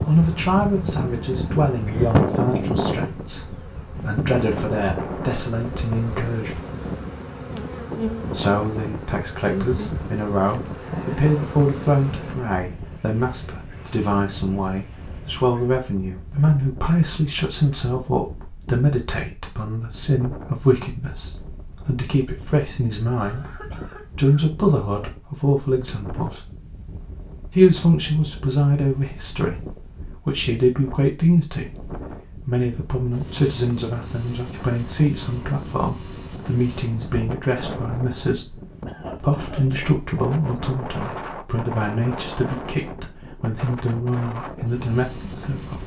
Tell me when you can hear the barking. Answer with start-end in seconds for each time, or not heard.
not heard.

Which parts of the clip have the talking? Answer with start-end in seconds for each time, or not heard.
0.1-6.6, 8.3-26.4, 27.5-38.5, 39.2-45.8.